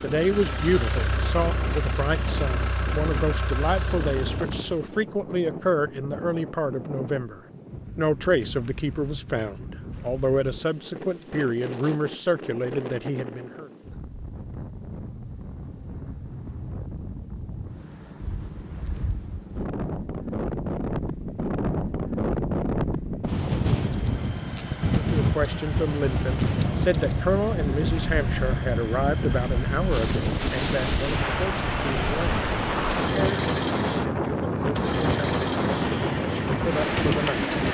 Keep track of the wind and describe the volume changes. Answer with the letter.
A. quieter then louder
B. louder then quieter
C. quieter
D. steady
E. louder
E.